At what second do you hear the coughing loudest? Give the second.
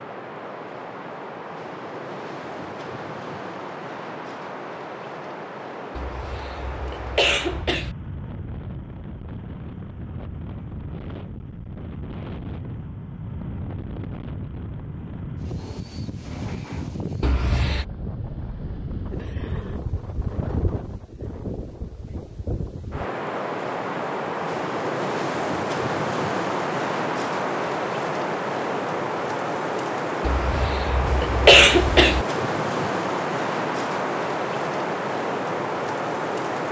32 s.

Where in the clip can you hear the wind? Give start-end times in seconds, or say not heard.
0.0-36.6.